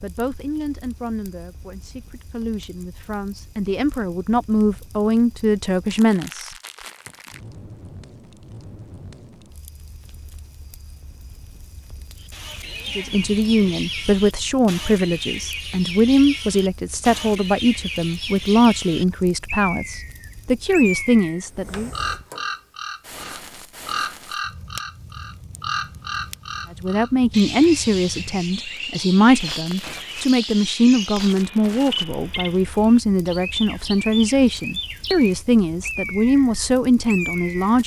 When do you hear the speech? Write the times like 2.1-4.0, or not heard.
0.0-6.5, 12.9-21.9, 26.8-37.8.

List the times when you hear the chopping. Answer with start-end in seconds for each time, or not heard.
not heard.